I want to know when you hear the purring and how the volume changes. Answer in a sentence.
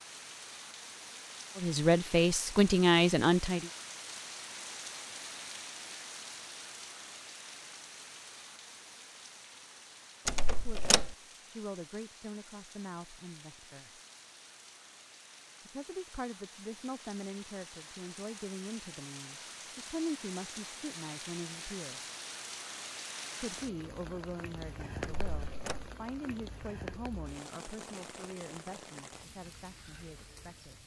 The purring can't be heard in this clip.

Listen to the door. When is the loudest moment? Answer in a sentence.
The loudest moment of the door is at 11 seconds.